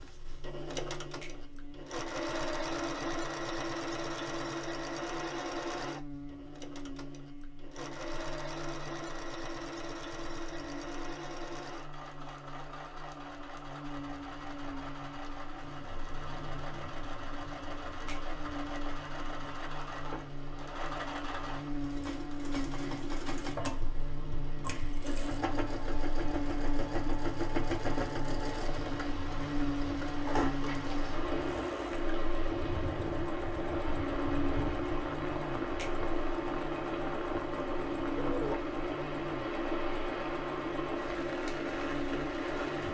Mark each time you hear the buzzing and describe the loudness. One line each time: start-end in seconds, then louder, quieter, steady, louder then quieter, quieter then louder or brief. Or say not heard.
0.0-42.8 louder.